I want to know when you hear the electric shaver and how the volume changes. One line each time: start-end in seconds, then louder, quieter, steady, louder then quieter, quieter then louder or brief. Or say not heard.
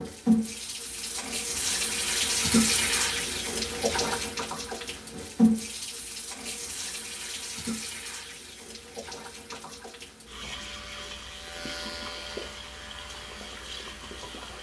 10.5-14.5 louder then quieter.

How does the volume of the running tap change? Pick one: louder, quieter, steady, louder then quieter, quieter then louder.
quieter.